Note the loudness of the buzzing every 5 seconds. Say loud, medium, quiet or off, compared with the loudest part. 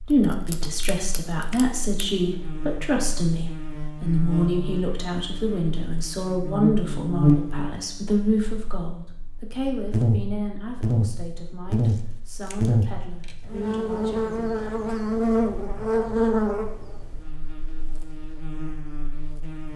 medium, loud, loud, loud.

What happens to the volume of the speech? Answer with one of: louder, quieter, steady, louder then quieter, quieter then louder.
quieter.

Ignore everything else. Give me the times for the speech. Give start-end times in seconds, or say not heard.
0.1-14.4.